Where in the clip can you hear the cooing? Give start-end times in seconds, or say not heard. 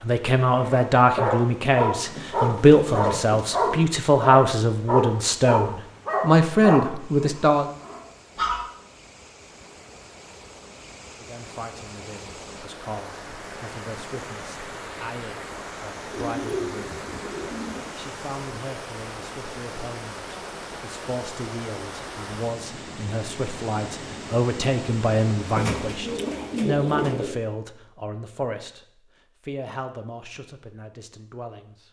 2.0-4.0, 16.1-17.9, 25.6-27.4.